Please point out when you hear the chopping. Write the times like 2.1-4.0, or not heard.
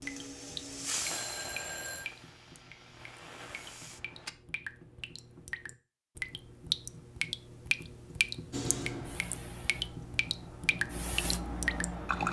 not heard.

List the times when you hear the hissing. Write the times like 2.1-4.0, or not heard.
0.0-4.3, 8.5-12.2.